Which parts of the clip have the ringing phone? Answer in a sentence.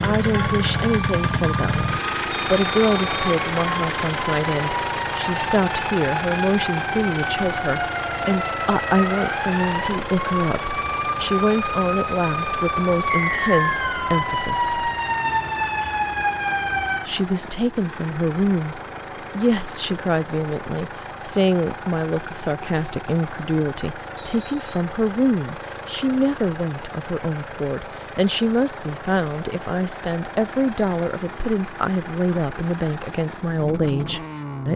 The ringing phone can't be heard in this clip.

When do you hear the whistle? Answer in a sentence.
The whistle can be heard from 2.3 to 3.4 s, from 13.1 to 14.1 s and from 24.1 to 24.8 s.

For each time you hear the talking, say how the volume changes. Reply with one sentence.
The talking can be heard from 0.0 to 14.9 s, at a steady volume; and from 17.1 to 34.7 s, at a steady volume.